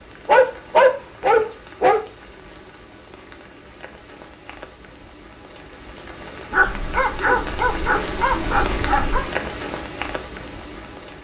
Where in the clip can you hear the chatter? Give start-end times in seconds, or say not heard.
not heard.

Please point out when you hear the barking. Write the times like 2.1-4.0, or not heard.
0.2-2.0, 6.5-9.2.